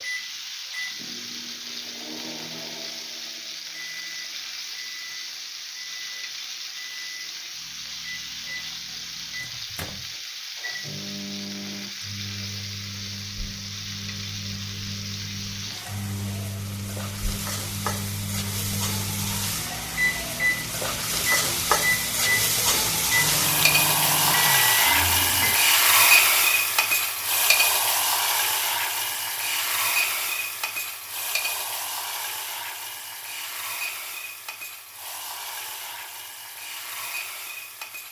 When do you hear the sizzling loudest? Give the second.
26 s.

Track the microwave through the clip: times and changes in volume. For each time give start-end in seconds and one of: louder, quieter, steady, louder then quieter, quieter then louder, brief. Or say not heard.
0.0-25.6 louder.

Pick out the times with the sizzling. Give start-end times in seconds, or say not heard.
0.0-38.0.